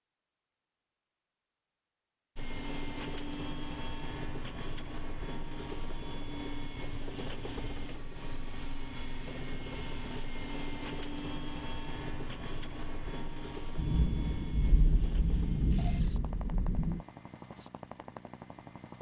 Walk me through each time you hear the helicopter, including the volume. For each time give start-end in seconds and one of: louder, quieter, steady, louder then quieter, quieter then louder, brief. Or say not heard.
2.4-18.9 quieter.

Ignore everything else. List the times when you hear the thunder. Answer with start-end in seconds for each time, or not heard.
13.8-17.0.